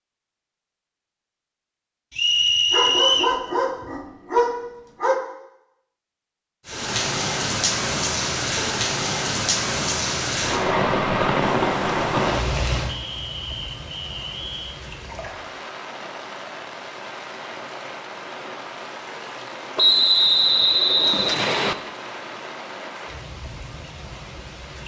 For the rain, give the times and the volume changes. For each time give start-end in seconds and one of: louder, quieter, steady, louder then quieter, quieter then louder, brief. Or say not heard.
6.7-24.8 quieter.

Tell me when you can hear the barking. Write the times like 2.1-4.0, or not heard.
2.7-5.2.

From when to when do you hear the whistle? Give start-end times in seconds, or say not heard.
2.1-3.4, 12.8-14.8, 19.8-21.8.